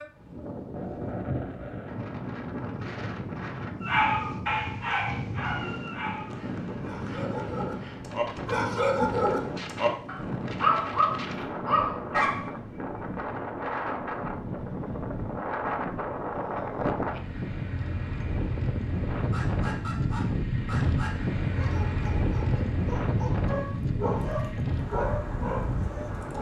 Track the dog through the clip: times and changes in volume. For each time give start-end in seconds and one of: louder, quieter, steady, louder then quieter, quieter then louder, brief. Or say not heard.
3.8-12.5 quieter then louder
19.1-26.3 louder.